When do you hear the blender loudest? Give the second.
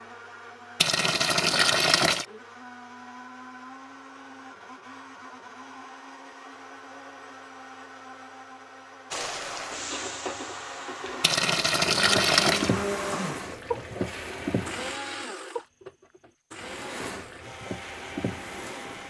13 s.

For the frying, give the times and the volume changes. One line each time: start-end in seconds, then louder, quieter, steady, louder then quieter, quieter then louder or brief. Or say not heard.
9.1-15.0 quieter then louder
16.6-19.0 brief.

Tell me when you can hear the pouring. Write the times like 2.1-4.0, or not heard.
0.8-2.2, 11.2-12.8.